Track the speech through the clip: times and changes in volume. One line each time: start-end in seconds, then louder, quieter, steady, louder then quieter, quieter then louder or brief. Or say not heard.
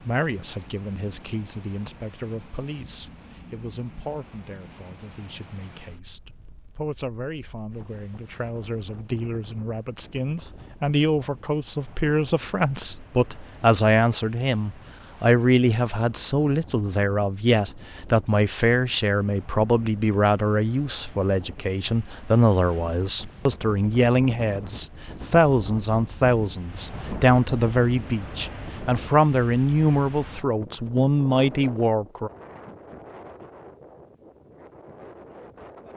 0.0-32.3 louder.